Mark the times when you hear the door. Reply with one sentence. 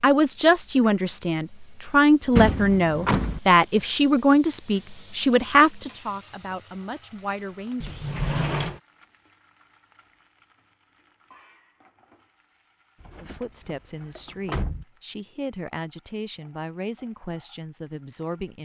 The door can be heard from 2.4 to 3.4 s, from 7.8 to 8.8 s and from 13.0 to 14.8 s.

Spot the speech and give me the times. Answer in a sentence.
The speech can be heard from 0.0 to 8.0 s and from 13.2 to 18.6 s.